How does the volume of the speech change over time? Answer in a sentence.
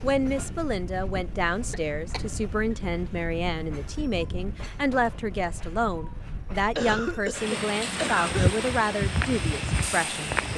The volume of the speech stays about the same.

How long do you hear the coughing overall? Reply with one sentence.
You can hear the coughing for 2 seconds altogether.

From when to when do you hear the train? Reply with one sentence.
The train can be heard from 0.0 to 10.5 s.